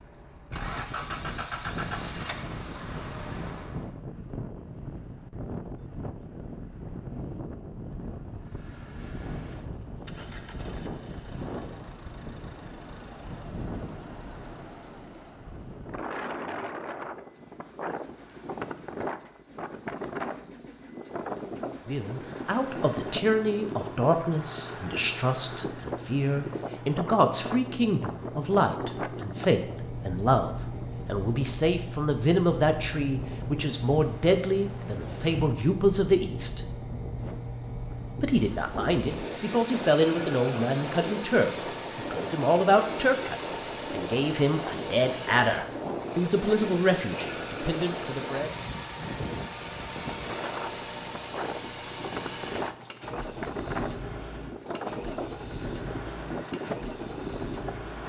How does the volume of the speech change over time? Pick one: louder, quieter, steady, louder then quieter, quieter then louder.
steady.